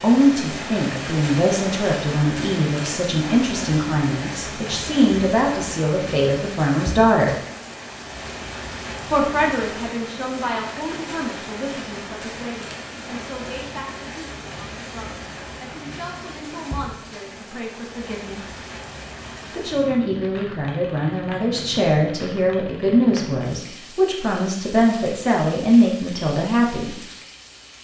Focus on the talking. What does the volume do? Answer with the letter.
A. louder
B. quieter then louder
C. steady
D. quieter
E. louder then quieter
B.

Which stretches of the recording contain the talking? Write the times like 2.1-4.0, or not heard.
0.0-7.3, 9.1-18.6, 19.5-27.0.